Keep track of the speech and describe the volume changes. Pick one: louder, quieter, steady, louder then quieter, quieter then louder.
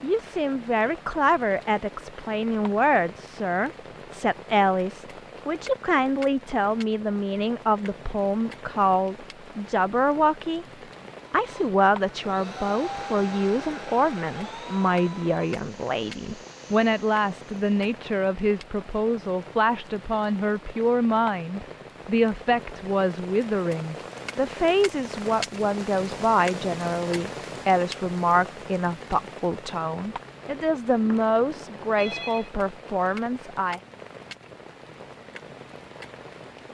steady.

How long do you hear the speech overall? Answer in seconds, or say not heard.
33 s.